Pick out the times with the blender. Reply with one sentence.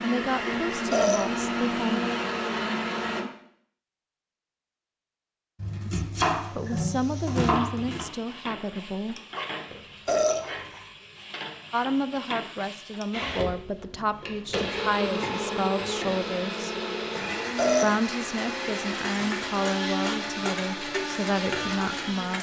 The blender can be heard from 0.0 to 3.2 s and from 13.1 to 22.3 s.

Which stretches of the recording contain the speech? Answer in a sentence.
You can hear the speech from 0.0 to 2.0 s, from 5.8 to 9.2 s, from 11.7 to 16.7 s and from 17.8 to 22.3 s.